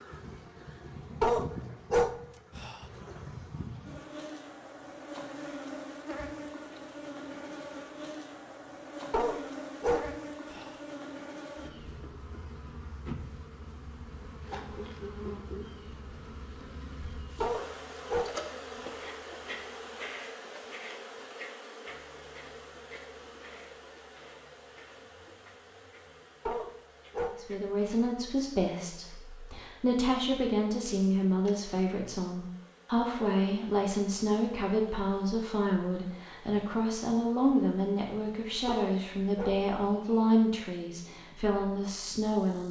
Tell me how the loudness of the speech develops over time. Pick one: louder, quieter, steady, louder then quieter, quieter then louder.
steady.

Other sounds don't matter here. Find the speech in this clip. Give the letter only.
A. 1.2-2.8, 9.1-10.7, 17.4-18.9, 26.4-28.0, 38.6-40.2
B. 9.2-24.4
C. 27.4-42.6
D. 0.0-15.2
C.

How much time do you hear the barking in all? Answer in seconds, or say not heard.
8 s.